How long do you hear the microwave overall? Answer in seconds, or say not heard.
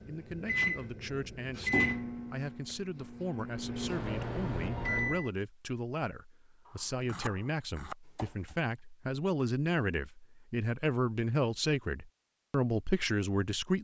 5 s.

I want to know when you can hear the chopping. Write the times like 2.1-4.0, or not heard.
6.7-8.6.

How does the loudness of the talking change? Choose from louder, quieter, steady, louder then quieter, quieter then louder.
louder.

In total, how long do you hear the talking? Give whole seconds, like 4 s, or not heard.
14 s.